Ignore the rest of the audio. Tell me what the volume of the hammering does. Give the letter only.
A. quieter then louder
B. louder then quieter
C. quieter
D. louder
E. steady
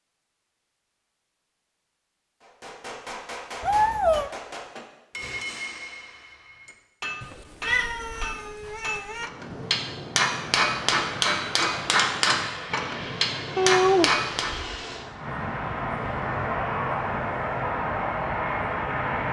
D.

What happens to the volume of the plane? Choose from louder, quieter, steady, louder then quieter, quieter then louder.
louder.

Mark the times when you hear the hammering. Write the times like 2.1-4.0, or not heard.
2.4-14.6.